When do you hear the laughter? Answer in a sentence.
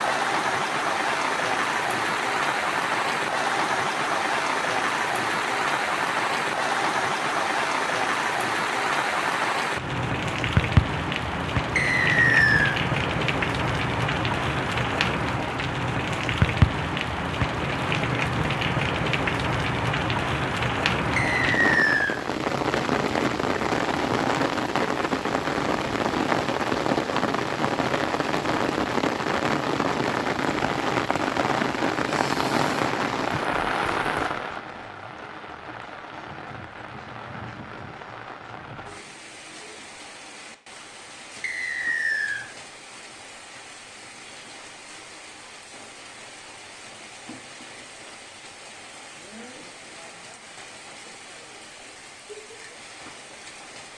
The laughter can't be heard in this clip.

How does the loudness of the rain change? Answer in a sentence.
The loudness of the rain goes down.